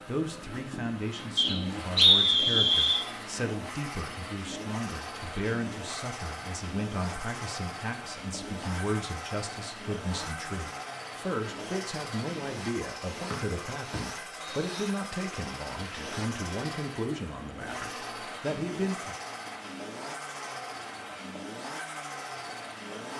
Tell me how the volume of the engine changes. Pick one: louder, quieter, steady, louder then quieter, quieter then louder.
steady.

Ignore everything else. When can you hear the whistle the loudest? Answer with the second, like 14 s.
2 s.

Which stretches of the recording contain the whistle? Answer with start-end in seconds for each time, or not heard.
1.4-3.0, 13.3-14.8.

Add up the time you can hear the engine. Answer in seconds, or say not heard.
23 s.